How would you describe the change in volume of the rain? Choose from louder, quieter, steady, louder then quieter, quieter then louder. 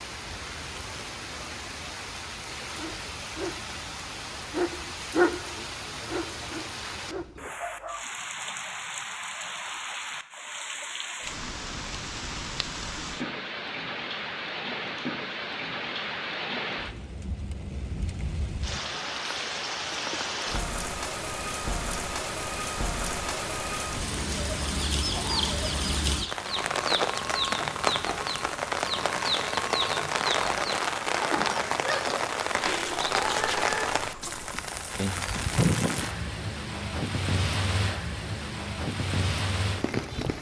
louder.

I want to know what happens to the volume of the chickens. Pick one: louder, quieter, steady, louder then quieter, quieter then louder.
steady.